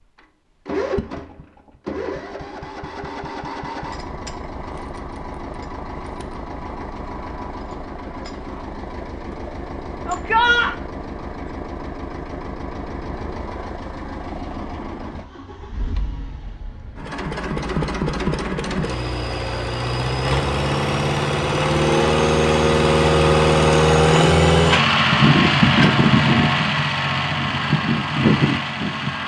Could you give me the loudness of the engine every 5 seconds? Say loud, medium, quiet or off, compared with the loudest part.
quiet, quiet, quiet, medium, loud, loud.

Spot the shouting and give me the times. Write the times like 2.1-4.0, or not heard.
10.1-10.8.